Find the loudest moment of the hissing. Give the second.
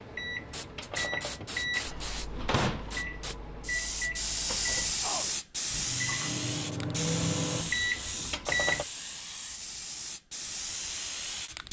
5 s.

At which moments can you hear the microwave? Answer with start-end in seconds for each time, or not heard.
0.0-8.8.